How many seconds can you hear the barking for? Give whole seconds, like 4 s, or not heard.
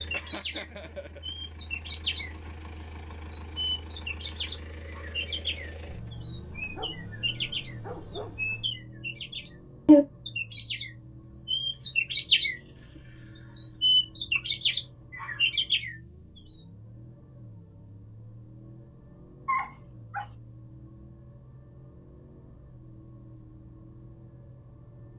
4 s.